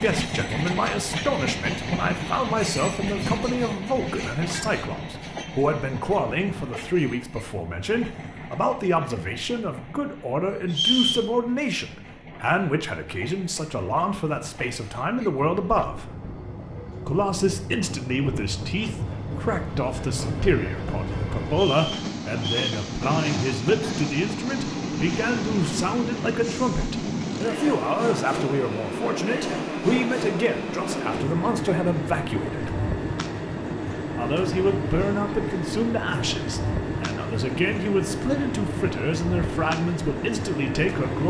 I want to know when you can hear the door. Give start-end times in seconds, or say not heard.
not heard.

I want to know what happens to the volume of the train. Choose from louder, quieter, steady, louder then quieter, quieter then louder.
quieter then louder.